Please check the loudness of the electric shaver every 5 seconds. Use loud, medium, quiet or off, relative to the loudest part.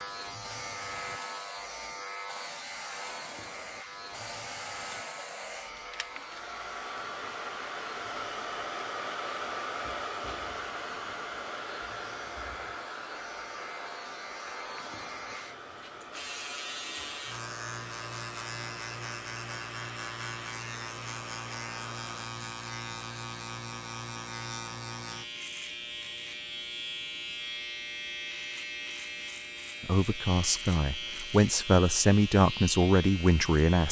loud, medium, medium, loud, loud, loud, loud.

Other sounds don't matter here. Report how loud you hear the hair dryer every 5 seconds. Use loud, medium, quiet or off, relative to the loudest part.
medium, loud, loud, medium, medium, off, off.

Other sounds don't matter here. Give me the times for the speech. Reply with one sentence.
You can hear the speech from 29.8 to 33.8 s.